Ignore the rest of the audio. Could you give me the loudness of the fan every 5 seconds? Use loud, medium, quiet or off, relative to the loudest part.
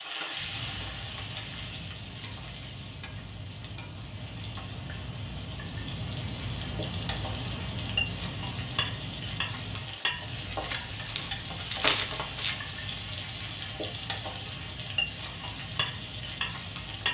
medium, loud, medium, medium.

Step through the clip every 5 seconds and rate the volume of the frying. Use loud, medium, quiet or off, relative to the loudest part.
medium, loud, loud, loud.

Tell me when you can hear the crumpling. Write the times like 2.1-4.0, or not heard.
10.6-12.6.